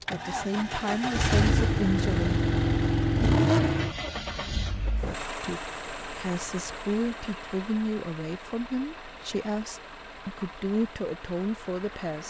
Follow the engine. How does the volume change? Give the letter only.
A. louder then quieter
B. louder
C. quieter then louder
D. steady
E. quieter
E.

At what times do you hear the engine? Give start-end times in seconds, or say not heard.
0.0-12.2.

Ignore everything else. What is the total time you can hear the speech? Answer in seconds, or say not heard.
9 s.